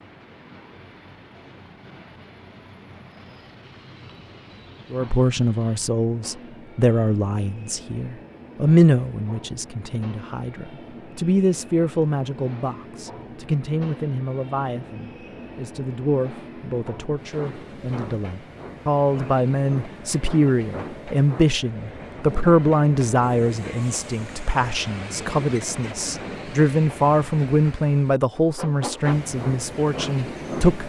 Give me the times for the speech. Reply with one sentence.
The speech can be heard from 4.9 to 30.8 s.